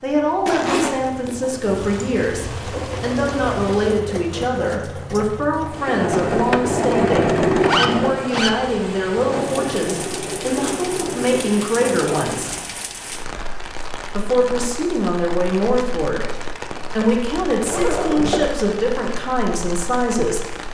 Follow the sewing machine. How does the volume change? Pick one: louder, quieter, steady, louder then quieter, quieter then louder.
louder then quieter.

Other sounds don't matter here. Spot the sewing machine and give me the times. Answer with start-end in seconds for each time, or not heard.
2.5-13.1.